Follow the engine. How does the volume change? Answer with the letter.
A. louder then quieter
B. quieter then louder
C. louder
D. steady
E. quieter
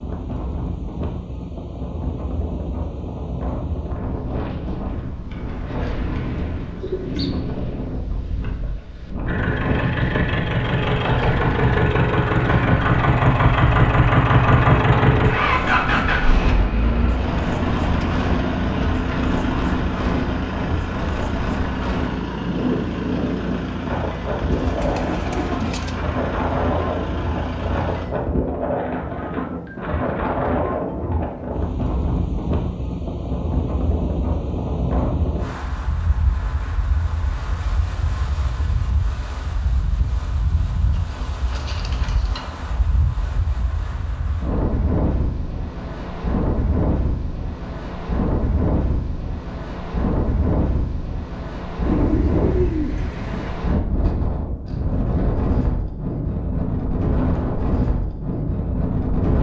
E.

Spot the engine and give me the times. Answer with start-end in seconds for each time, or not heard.
9.2-28.1.